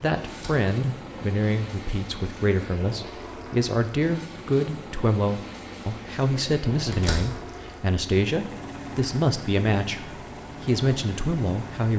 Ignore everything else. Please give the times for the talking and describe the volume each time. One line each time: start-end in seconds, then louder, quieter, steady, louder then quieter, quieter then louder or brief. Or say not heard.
0.0-11.9 steady.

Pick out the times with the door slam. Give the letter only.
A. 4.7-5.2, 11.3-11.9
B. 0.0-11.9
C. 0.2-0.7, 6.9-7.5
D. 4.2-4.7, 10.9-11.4
C.